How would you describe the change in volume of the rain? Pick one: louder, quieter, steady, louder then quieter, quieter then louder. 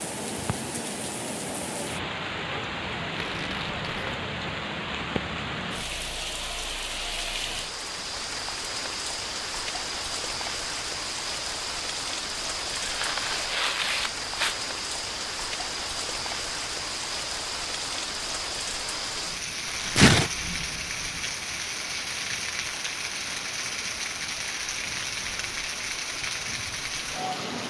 steady.